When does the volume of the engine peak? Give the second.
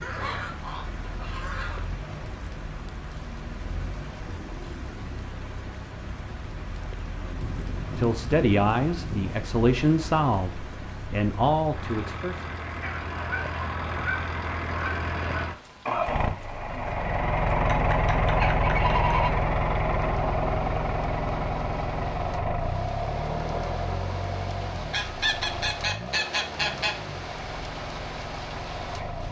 18 s.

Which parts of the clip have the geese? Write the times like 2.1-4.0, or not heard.
0.0-1.9, 7.4-9.4, 12.8-15.6, 17.6-19.4, 24.9-26.9.